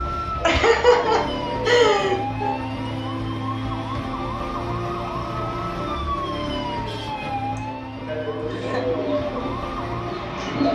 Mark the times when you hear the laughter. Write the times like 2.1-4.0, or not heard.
0.4-2.5, 7.5-8.8.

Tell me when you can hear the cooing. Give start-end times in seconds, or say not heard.
0.0-2.3, 8.6-10.7.